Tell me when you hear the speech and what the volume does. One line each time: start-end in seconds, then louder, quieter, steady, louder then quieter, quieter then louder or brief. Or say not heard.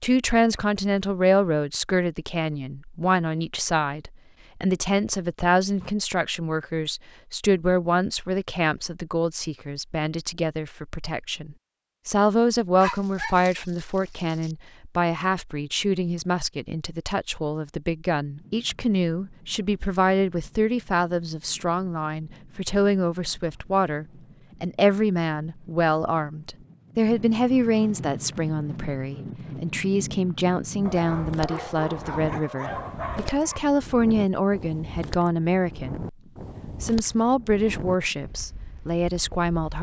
0.0-36.1 steady
36.8-39.7 brief.